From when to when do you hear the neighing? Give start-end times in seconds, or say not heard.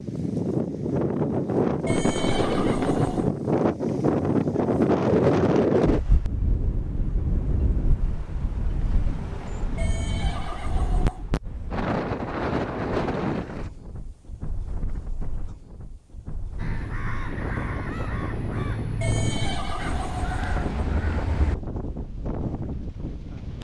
1.9-3.3, 9.8-11.2, 19.0-20.6.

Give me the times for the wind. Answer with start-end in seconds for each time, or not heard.
0.0-23.5.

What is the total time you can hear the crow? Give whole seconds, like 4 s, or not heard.
5 s.